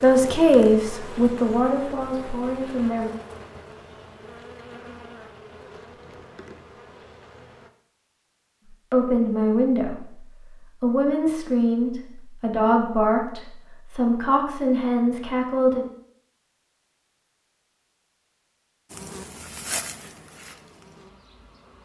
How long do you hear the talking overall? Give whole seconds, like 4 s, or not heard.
10 s.